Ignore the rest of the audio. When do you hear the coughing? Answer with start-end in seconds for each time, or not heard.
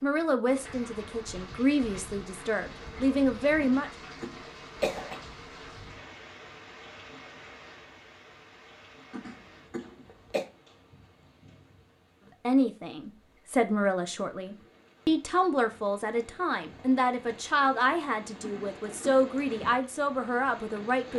3.6-5.2, 9.1-10.4, 18.4-19.3.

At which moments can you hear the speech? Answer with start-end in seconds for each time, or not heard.
0.0-3.9, 12.4-21.1.